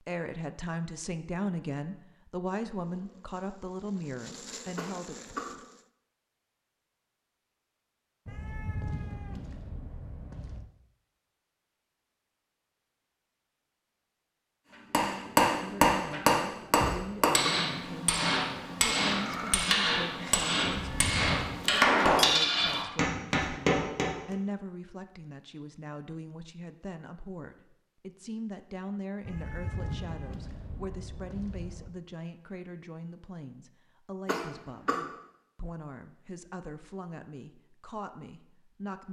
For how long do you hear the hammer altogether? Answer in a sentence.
You can hear the hammer for 9 seconds altogether.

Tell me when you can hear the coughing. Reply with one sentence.
The coughing can be heard from 4.8 to 5.5 s, from 16.9 to 17.6 s and from 34.2 to 35.0 s.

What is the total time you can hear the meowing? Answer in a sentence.
The meowing can be heard for 6 seconds in total.